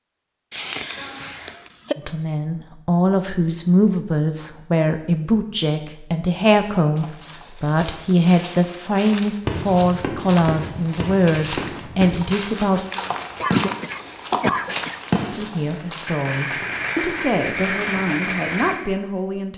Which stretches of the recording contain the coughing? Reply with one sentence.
You can hear the coughing from 0.5 to 1.9 s and from 13.1 to 15.0 s.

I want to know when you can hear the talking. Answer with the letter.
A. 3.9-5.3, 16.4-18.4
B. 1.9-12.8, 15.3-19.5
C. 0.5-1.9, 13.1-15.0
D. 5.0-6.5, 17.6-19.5
B.